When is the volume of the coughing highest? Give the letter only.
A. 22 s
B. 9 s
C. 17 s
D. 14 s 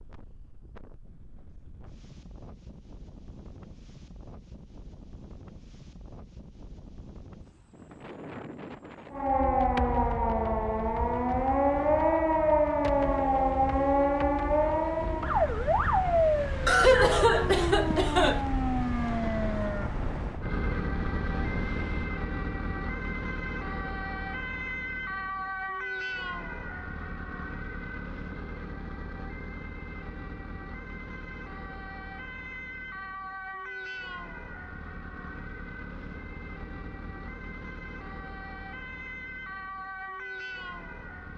C.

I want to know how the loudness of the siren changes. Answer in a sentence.
The volume of the siren goes down.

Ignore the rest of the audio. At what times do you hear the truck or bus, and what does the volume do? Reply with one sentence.
You can't hear the truck or bus here.